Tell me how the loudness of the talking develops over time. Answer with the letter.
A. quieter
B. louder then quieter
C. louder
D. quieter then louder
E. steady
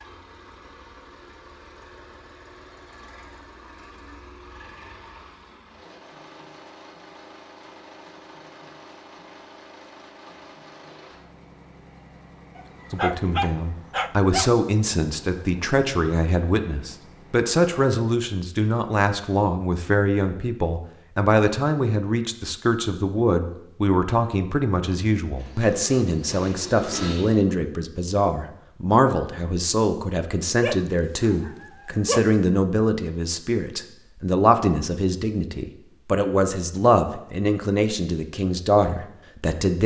E.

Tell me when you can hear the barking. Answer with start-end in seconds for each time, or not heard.
12.6-14.5, 30.6-32.4.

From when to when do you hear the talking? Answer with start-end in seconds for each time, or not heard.
12.9-39.8.